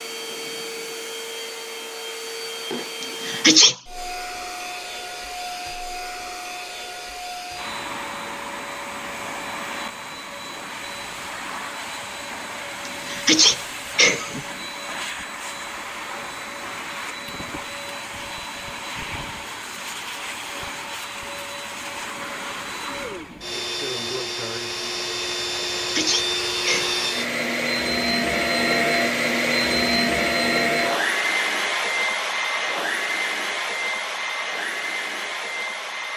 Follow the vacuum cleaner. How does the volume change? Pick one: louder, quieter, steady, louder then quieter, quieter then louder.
louder.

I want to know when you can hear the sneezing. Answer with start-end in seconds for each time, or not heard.
3.0-3.8, 12.8-14.4, 25.8-27.1.